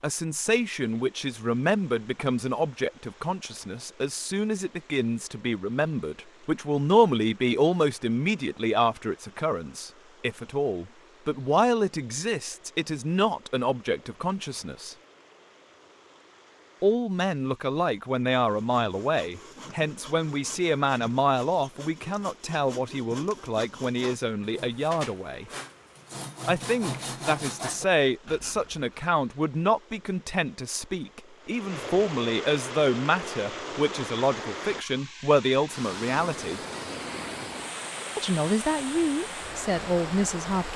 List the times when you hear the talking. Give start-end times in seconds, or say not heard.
0.0-14.9, 16.8-25.4, 26.4-36.6, 38.1-40.7.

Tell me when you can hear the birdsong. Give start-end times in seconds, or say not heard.
not heard.